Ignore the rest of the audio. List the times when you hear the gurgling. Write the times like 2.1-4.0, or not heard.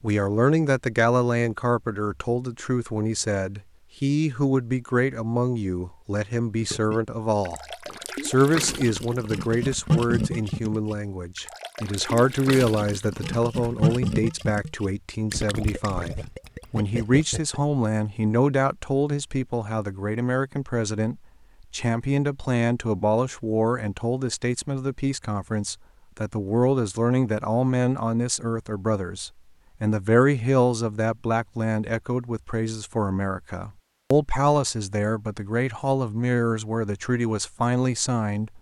6.6-17.6.